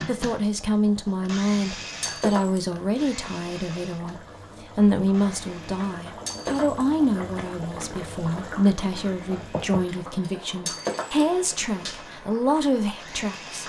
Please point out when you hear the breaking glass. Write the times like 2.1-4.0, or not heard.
2.0-2.6, 6.2-6.8, 10.7-11.2.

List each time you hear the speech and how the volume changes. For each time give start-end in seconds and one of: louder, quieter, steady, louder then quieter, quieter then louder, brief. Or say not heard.
0.1-13.6 steady.